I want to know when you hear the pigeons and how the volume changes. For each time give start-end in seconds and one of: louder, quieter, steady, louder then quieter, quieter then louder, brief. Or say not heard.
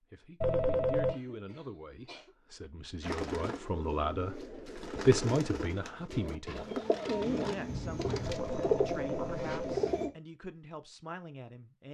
3.0-10.1 louder.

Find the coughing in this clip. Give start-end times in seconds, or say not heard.
1.1-2.3, 7.7-8.3.